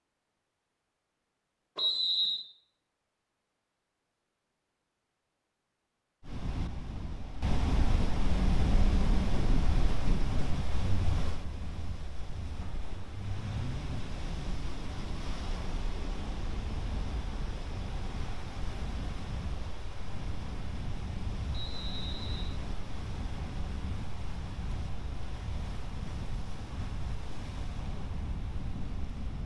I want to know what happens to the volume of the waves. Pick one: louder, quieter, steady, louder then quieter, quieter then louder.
quieter.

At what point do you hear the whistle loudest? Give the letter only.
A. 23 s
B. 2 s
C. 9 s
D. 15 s
B.